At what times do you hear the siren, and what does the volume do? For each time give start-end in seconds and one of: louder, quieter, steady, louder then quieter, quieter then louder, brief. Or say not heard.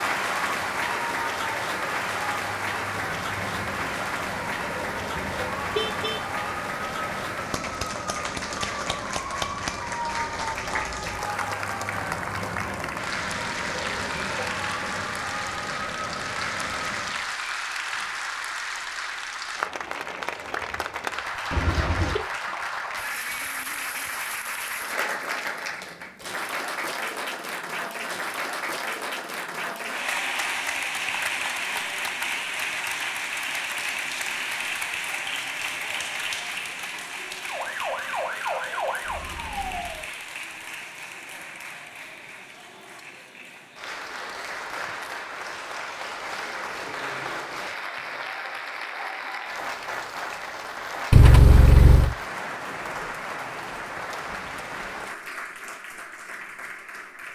0.2-17.3 steady
37.4-40.0 brief.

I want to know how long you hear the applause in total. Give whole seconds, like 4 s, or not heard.
57 s.